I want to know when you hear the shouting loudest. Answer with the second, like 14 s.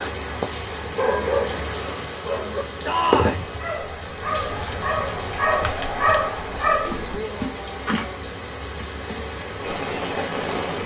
3 s.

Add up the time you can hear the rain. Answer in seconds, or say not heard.
11 s.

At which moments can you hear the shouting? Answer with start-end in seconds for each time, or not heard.
2.9-3.5, 7.1-8.2.